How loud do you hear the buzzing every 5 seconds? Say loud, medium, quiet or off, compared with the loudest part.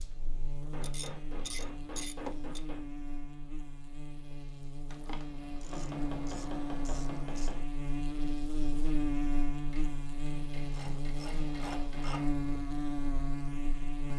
medium, loud, loud.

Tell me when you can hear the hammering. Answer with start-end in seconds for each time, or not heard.
0.6-2.9, 5.6-7.7, 9.7-12.3.